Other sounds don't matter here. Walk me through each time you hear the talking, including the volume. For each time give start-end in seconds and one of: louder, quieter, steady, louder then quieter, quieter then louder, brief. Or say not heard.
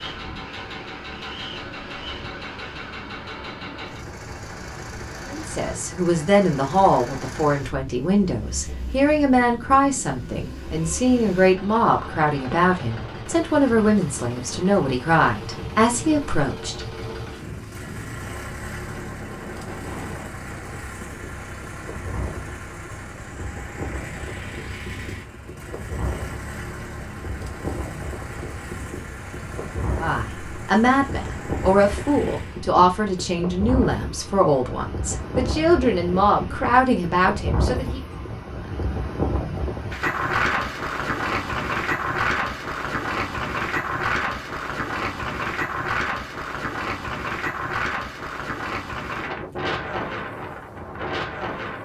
5.3-16.8 steady
29.9-38.0 steady.